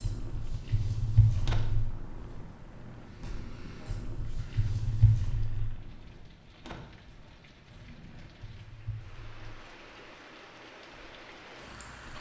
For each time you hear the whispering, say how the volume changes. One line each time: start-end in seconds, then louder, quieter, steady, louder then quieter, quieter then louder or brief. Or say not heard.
not heard.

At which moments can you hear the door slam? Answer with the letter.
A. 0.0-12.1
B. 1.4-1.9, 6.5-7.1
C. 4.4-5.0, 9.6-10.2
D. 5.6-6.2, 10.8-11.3
B.